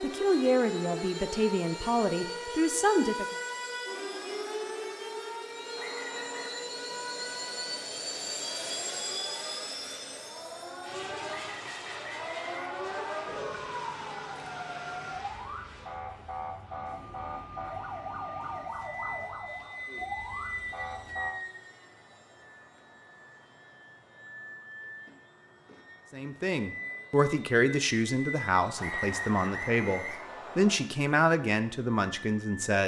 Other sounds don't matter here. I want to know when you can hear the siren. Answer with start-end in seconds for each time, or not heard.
0.0-21.4.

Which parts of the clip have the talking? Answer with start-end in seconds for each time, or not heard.
0.0-3.2, 26.1-32.8.